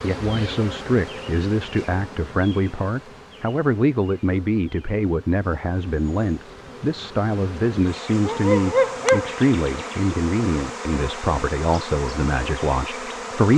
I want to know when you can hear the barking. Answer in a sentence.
The barking can be heard from 8.2 to 9.3 s.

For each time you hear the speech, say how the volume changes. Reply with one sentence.
You can hear the speech from 0.0 to 13.5 s, at a steady volume.